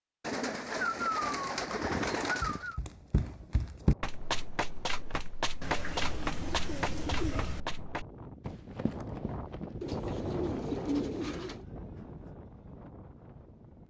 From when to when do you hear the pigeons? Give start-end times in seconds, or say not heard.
0.2-2.8, 5.6-7.6, 9.8-11.7.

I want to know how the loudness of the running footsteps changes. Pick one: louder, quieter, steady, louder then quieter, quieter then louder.
quieter.